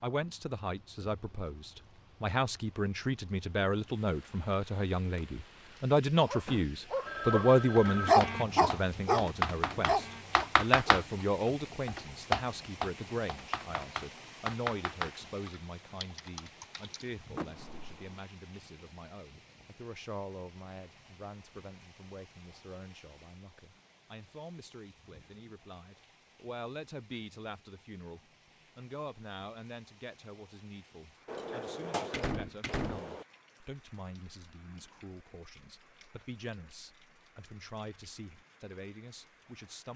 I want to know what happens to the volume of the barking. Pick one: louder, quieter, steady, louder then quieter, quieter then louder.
louder then quieter.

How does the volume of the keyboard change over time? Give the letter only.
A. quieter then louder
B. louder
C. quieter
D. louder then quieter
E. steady
C.